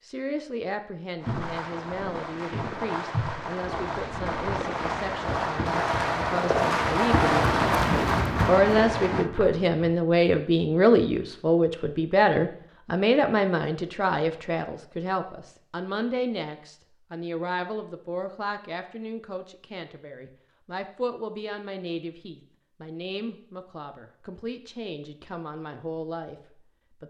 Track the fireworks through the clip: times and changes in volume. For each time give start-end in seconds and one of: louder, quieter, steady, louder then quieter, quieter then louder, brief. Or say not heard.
1.2-9.3 louder.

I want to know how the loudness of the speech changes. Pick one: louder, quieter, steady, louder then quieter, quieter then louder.
louder then quieter.